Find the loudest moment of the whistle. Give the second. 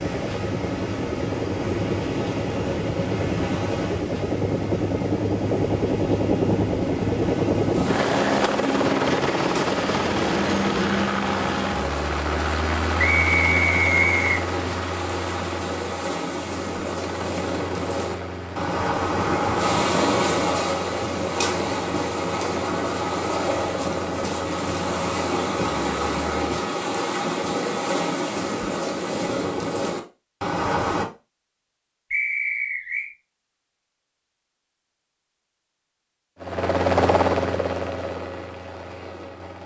14 s.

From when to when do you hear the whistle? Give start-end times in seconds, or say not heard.
12.9-14.3, 32.1-33.1.